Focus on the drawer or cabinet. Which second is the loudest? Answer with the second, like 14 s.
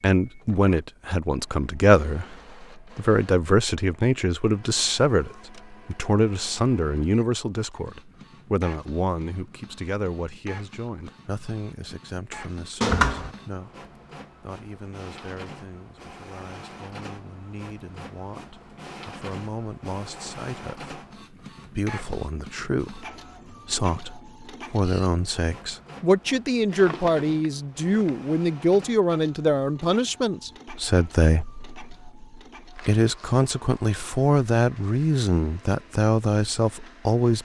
13 s.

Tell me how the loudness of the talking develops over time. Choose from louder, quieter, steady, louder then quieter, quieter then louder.
quieter then louder.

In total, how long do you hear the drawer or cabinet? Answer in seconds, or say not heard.
2 s.